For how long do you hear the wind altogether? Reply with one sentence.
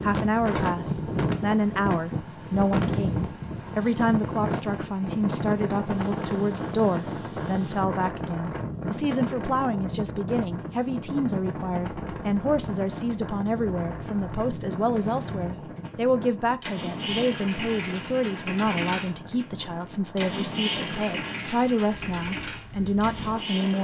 You can hear the wind for 24 seconds altogether.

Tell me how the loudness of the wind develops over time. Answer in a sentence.
The loudness of the wind goes down.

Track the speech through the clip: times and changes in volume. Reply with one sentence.
You can hear the speech from 0.0 to 23.8 s, at a steady volume.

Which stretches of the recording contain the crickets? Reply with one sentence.
The crickets can't be heard in this clip.